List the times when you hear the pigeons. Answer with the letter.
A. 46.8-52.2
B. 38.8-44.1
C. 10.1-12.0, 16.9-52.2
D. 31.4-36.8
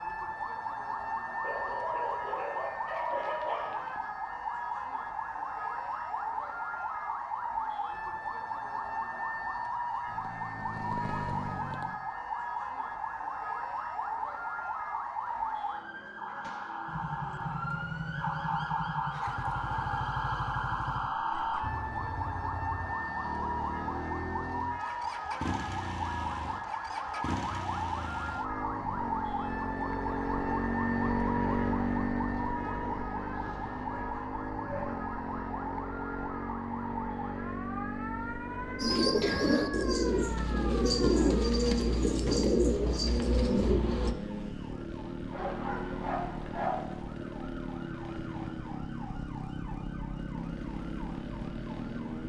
B.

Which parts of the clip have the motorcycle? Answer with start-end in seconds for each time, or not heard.
10.1-12.0, 16.9-52.2.